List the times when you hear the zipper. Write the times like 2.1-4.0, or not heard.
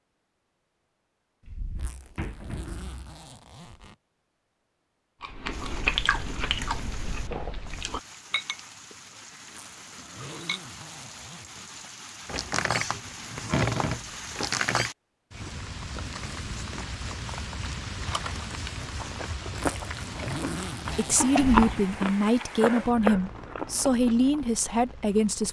1.8-4.0, 9.4-11.8, 19.8-21.4.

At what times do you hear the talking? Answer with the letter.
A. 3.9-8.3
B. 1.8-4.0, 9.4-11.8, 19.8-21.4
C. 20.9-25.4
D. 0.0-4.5
C.